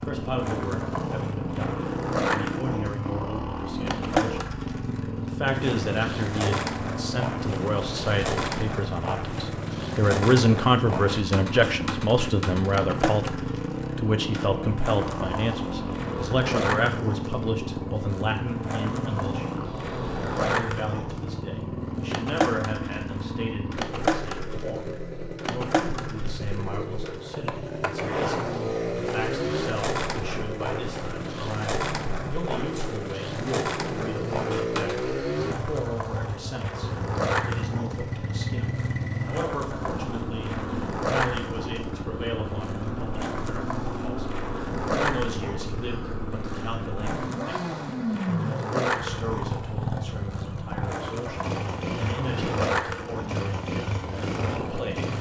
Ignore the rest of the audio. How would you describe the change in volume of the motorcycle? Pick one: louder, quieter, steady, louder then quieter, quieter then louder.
steady.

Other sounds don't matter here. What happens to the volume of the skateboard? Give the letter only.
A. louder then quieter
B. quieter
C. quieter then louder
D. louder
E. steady
E.